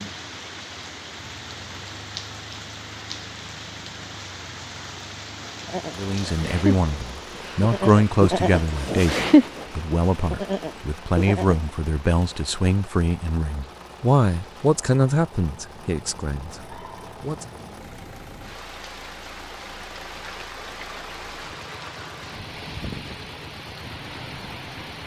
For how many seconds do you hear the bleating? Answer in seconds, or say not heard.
6 s.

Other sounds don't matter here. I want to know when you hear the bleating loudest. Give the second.
9 s.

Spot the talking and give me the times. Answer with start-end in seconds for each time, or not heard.
6.0-17.5.